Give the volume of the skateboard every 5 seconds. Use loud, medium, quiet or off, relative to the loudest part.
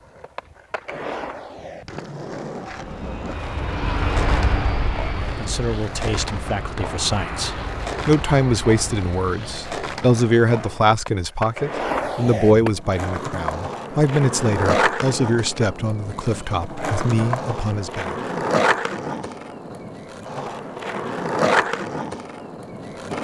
medium, medium, loud, loud, loud.